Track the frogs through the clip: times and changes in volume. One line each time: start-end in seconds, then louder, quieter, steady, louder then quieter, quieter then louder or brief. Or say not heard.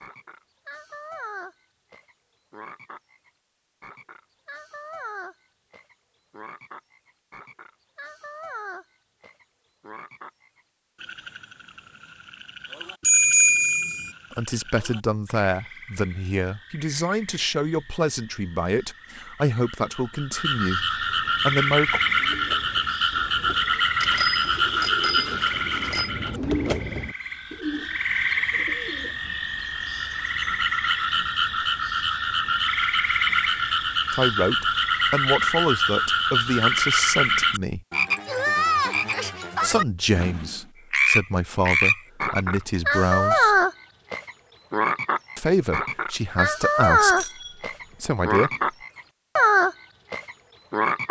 0.0-51.0 louder.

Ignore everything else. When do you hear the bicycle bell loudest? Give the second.
13 s.